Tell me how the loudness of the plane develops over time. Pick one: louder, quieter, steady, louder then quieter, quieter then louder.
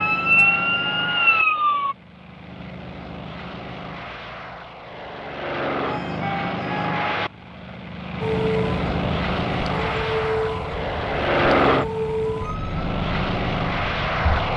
louder.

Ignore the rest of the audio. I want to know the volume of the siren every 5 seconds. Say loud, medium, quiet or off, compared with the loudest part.
loud, medium, medium.